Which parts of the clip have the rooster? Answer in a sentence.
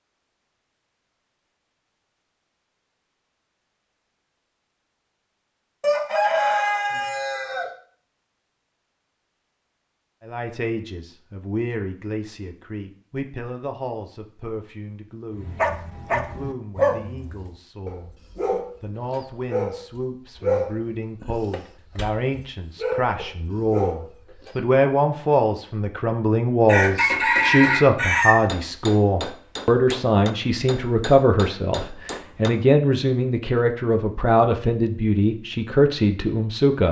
The rooster can be heard from 5.8 to 7.7 s and from 26.6 to 28.4 s.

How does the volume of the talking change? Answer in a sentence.
The loudness of the talking goes up.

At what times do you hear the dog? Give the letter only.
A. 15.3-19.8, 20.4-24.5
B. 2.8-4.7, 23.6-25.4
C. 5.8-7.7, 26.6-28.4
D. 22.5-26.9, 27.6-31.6
A.